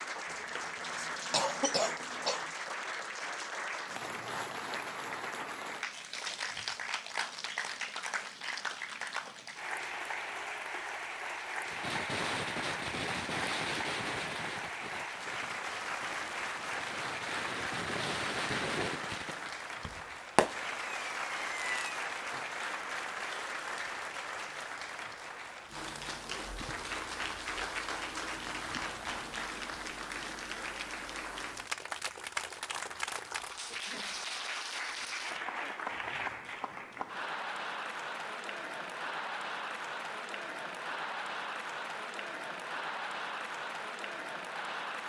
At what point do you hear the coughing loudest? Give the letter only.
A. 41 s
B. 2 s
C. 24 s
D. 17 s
B.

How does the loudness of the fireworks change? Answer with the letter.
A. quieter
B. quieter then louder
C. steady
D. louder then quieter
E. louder
B.